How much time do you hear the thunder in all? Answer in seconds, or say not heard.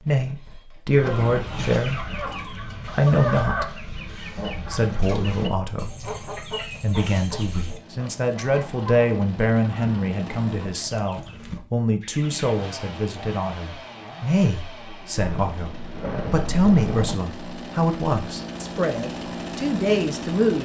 2 s.